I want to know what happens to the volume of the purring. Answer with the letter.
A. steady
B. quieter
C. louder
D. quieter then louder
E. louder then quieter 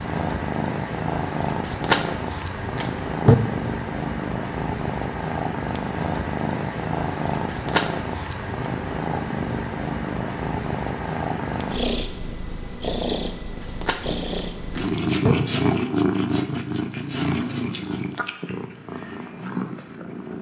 A.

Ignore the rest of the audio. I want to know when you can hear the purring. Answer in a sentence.
You can hear the purring from 0.0 to 20.3 s.